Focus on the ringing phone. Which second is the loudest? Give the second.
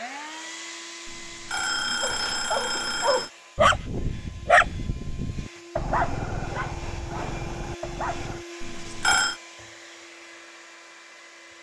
9 s.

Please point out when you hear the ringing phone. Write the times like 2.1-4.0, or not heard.
1.1-3.3, 8.6-9.3.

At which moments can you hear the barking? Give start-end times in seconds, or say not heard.
2.0-8.4.